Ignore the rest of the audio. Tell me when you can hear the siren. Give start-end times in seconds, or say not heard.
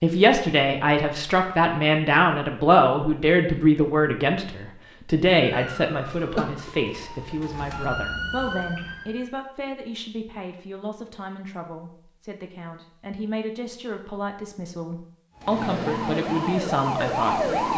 5.3-9.3, 15.3-17.7.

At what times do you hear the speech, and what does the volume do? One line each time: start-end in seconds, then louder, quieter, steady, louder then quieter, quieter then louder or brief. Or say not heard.
0.0-17.7 quieter then louder.